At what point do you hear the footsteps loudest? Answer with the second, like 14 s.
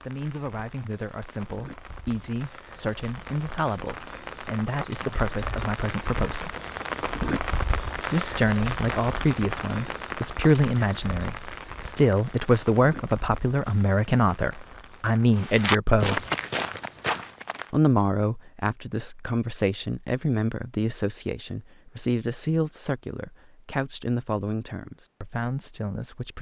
16 s.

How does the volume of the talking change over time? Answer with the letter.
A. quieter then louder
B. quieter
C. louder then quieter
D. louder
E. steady
C.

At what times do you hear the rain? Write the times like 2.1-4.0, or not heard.
0.0-15.4.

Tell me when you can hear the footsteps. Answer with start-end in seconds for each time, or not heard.
15.3-17.7.